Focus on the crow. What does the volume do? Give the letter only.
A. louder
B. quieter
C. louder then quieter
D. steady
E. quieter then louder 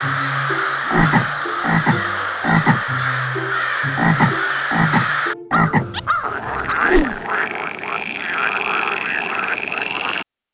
D.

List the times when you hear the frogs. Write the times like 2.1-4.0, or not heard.
0.0-10.4.